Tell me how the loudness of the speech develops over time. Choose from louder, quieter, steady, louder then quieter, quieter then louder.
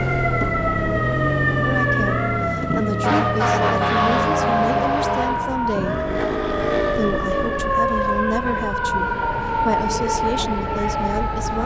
steady.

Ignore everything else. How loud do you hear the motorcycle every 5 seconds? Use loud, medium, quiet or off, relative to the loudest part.
loud, loud, off.